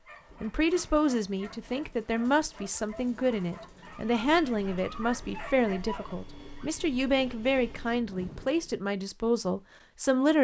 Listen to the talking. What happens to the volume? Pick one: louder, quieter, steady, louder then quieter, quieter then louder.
steady.